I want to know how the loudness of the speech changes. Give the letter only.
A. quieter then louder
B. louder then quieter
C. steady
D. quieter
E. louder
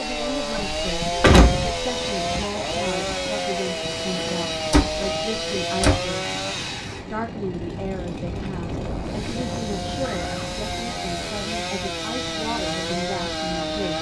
C.